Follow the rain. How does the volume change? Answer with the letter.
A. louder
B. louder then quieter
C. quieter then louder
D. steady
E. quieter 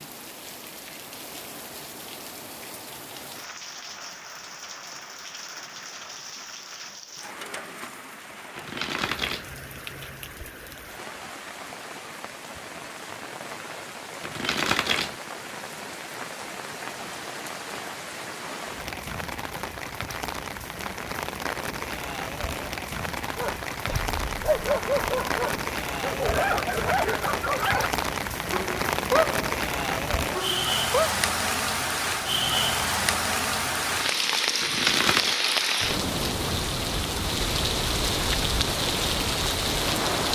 A.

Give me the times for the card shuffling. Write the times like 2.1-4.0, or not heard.
8.6-9.5, 14.2-15.2, 34.6-35.4.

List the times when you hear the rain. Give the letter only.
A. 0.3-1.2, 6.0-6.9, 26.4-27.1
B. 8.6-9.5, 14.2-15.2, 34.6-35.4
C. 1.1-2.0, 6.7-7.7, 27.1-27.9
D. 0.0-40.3
D.